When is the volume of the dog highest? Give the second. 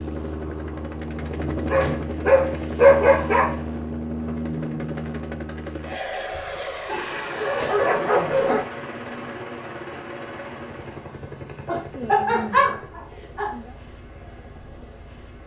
3 s.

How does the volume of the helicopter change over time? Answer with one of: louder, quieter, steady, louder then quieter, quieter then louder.
quieter.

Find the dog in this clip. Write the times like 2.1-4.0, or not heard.
1.6-3.6, 6.8-8.7, 11.7-13.6.